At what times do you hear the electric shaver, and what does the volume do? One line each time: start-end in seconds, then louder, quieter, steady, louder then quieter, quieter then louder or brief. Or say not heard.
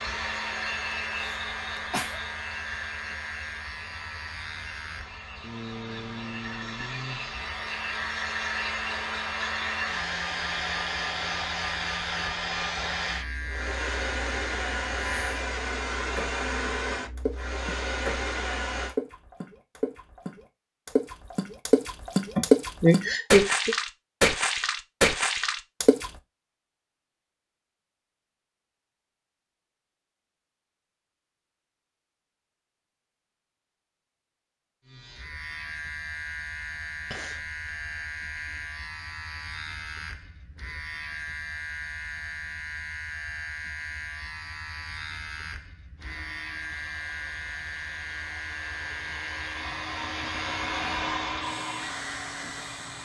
0.0-15.4 steady
34.9-52.9 steady.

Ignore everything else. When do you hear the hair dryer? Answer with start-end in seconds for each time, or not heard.
0.0-18.9, 46.0-52.9.